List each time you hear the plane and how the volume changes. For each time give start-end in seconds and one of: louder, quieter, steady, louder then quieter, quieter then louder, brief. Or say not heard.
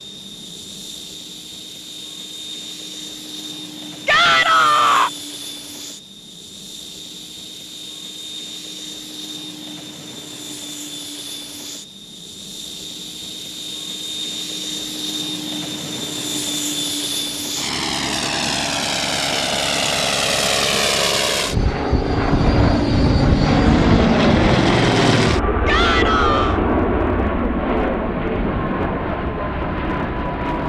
0.0-30.6 louder.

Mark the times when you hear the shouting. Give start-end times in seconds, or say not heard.
4.0-5.1, 25.6-26.6.